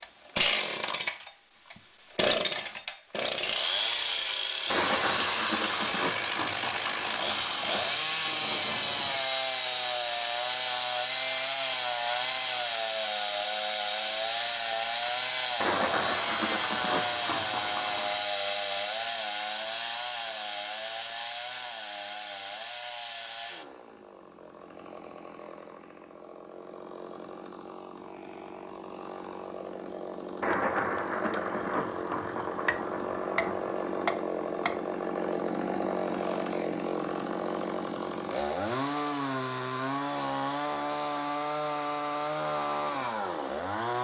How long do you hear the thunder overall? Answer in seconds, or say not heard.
11 s.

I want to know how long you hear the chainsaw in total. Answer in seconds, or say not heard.
44 s.